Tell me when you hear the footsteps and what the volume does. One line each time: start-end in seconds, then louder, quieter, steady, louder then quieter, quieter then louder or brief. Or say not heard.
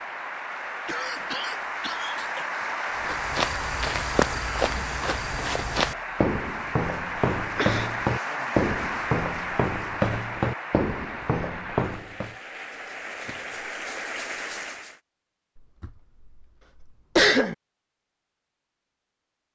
3.0-12.3 steady.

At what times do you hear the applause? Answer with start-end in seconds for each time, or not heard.
0.0-15.0.